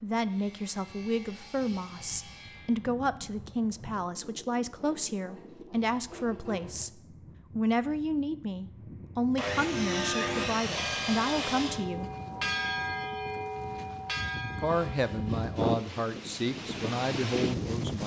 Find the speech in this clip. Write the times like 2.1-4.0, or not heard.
0.0-12.1, 14.6-18.0.